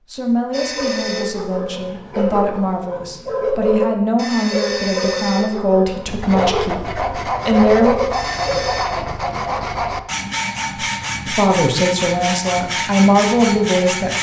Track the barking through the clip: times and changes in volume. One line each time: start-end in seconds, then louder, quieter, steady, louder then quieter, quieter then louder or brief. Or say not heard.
0.5-8.8 steady.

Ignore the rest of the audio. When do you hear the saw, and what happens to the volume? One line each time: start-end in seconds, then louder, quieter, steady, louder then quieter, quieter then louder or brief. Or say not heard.
6.0-14.1 steady.